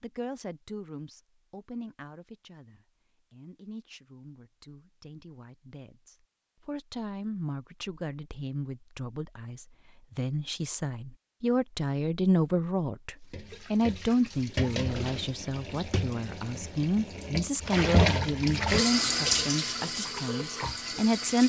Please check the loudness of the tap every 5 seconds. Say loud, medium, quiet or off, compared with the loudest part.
off, off, medium, loud, medium.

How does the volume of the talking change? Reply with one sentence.
The loudness of the talking goes up.